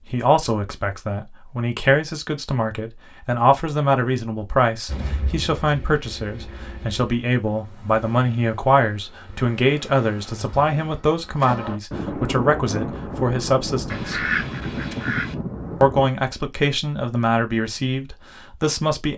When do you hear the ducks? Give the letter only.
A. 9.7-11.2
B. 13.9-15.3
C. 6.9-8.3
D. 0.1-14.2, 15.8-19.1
B.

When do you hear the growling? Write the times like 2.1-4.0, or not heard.
not heard.